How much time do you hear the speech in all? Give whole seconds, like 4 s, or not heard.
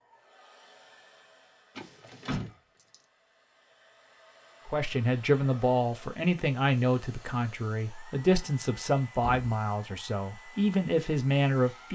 7 s.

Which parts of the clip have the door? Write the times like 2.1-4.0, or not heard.
1.8-3.0, 9.2-9.6.